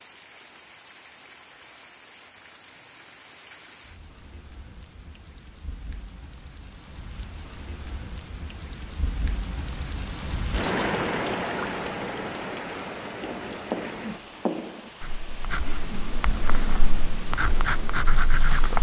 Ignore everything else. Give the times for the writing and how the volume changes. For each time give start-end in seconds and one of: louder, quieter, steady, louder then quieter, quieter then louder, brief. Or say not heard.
13.2-18.7 quieter then louder.